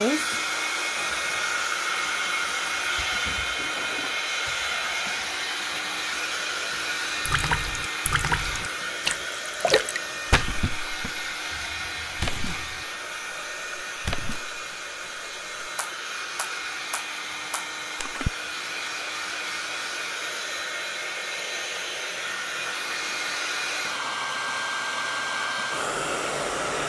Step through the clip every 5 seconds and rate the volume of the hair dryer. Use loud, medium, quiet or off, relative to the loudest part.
loud, loud, medium, medium, loud, loud.